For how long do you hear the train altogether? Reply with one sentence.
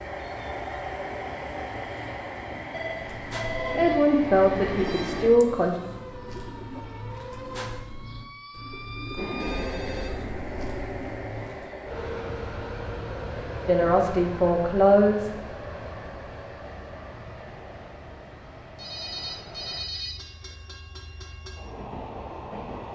You can hear the train for 19 seconds altogether.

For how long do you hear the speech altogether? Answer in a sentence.
The speech can be heard for 4 seconds in total.